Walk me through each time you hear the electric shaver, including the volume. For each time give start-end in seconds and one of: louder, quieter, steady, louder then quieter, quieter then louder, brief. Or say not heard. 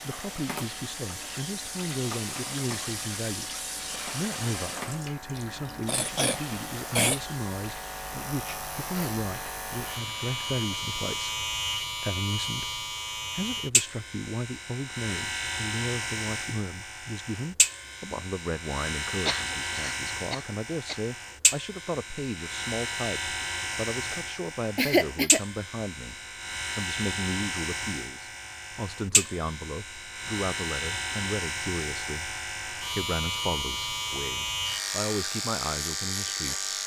0.0-36.8 louder.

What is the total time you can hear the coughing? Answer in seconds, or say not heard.
4 s.